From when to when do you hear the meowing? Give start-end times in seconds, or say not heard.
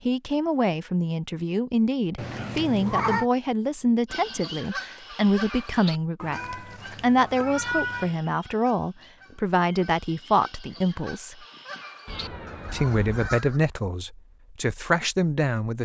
2.1-3.2, 6.2-8.2, 12.1-13.3.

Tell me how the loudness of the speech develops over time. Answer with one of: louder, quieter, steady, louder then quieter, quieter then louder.
steady.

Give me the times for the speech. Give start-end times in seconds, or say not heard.
0.1-11.3, 12.7-15.7.